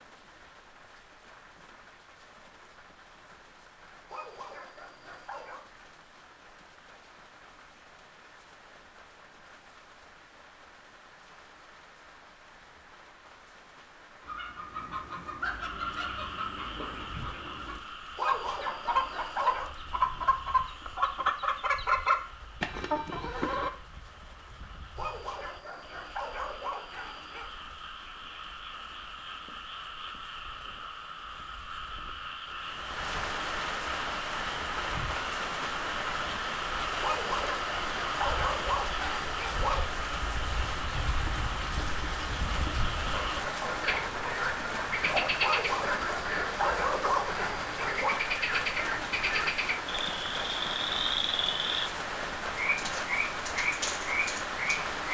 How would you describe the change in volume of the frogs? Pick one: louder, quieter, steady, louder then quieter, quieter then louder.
louder.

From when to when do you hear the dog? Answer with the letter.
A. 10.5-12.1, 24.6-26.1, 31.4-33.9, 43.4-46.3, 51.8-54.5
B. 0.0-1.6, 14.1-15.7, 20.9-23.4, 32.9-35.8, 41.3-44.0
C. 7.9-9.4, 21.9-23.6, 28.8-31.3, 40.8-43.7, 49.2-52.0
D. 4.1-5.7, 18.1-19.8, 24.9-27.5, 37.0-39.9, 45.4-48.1
D.